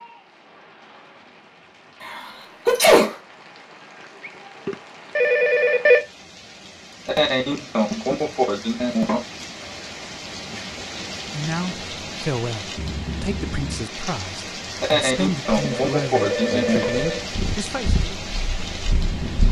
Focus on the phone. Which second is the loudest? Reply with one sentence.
The volume of the phone peaks at 6 seconds.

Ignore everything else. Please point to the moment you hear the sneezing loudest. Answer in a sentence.
The loudest moment of the sneezing is at 3 seconds.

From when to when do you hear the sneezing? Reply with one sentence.
You can hear the sneezing from 2.0 to 3.1 s, from 7.0 to 9.2 s and from 14.8 to 16.9 s.